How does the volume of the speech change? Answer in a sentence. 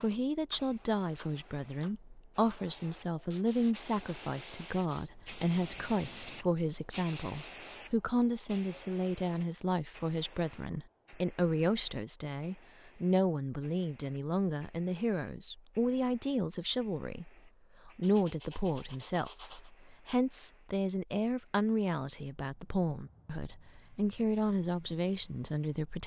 The loudness of the speech stays about the same.